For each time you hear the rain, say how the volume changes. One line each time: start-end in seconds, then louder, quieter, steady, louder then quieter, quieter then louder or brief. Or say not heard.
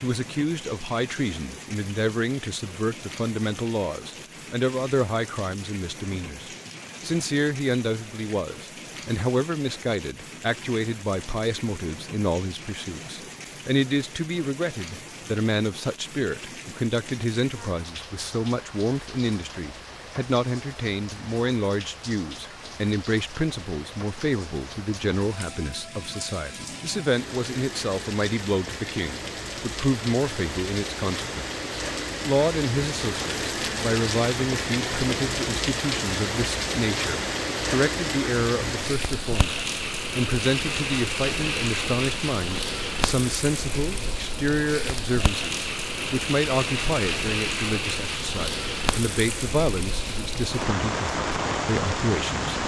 0.0-52.6 louder.